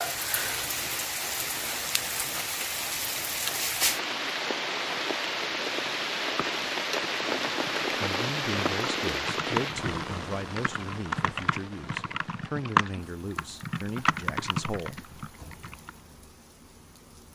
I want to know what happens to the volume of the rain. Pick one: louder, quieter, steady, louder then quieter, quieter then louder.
quieter.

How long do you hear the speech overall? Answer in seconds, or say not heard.
7 s.